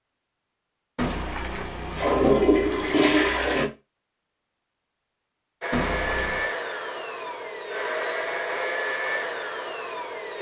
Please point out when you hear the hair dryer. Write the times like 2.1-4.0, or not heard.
5.6-10.3.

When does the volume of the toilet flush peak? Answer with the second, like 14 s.
3 s.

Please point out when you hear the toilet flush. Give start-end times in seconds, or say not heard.
0.9-3.7, 5.7-6.5.